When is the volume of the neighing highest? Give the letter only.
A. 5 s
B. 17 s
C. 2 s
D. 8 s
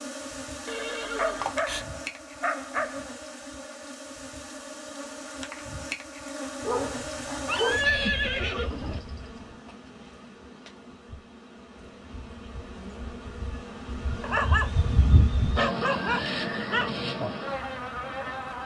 D.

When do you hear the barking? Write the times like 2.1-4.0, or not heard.
1.1-3.0, 6.6-7.8, 14.2-14.7, 15.6-16.9.